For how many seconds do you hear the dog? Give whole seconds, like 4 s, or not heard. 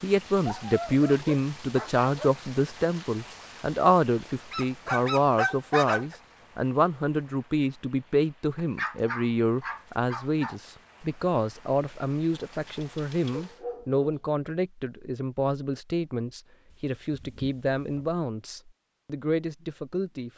9 s.